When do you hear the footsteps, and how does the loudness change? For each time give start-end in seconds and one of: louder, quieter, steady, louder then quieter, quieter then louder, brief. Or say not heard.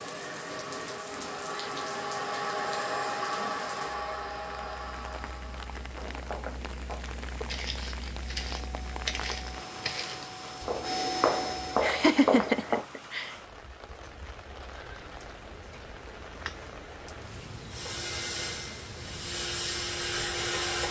6.0-12.8 louder.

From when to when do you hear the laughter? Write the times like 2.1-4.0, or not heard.
11.8-13.3.